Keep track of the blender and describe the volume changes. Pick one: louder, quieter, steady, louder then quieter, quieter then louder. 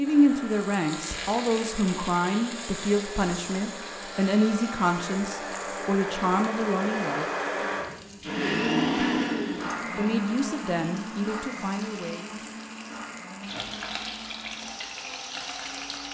louder then quieter.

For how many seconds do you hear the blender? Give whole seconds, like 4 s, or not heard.
16 s.